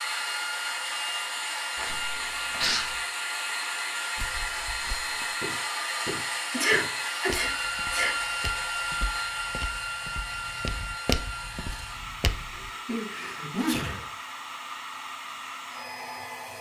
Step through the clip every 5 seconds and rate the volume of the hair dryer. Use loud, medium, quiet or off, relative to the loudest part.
loud, loud, medium, medium.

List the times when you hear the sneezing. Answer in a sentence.
The sneezing can be heard from 1.8 to 3.0 s, from 6.5 to 8.1 s and from 12.5 to 14.1 s.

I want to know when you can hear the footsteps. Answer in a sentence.
The footsteps can be heard from 4.2 to 12.7 s.